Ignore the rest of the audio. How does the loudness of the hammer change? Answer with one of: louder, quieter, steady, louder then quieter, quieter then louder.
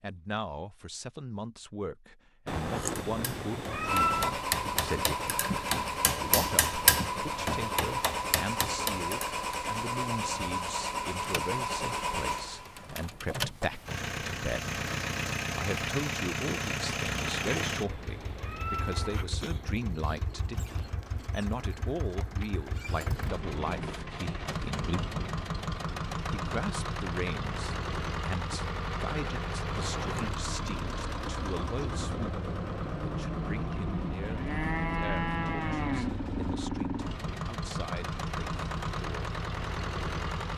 louder then quieter.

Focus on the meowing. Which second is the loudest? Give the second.
4 s.